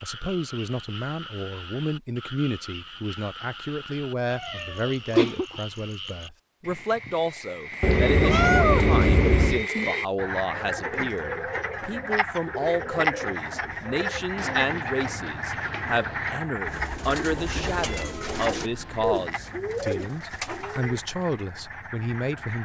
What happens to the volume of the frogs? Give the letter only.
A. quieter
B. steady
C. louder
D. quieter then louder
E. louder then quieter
E.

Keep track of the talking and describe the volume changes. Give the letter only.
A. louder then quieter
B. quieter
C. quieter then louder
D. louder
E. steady
E.